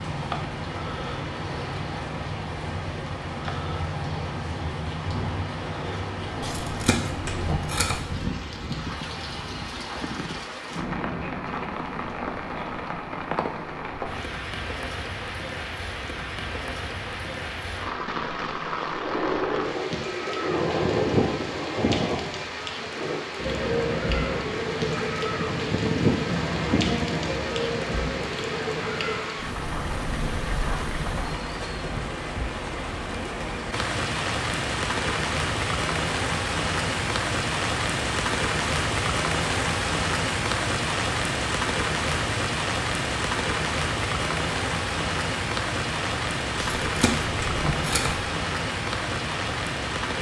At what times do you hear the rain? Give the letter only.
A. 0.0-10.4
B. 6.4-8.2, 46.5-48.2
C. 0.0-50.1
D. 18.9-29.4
C.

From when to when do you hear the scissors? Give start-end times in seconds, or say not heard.
6.4-8.2, 46.5-48.2.